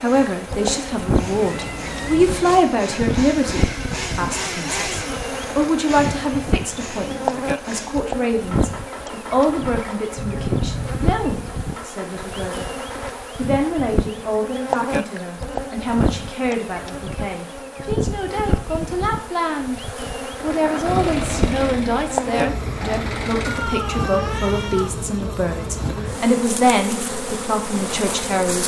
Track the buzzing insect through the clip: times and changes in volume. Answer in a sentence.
The buzzing insect can be heard from 0.1 to 28.6 s, at a steady volume.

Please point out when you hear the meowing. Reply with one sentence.
You can hear the meowing from 1.2 to 2.6 s, from 10.2 to 11.3 s and from 23.4 to 25.1 s.